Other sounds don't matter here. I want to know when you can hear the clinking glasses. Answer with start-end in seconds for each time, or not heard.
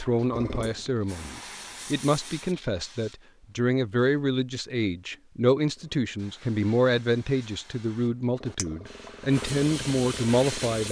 8.6-9.1.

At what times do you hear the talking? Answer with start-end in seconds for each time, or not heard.
0.0-10.8.